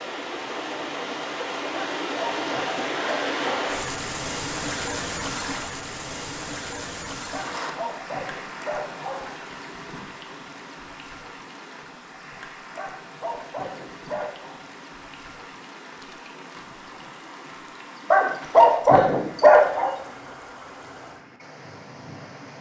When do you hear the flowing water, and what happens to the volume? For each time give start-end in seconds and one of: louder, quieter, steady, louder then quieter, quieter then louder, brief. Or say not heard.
0.0-22.5 quieter.